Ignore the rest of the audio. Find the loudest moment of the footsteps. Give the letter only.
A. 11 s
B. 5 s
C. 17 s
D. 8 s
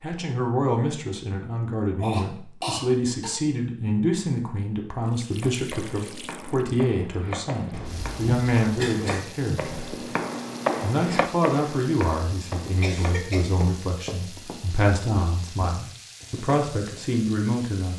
A.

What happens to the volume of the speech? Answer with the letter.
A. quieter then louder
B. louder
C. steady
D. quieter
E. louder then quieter
C.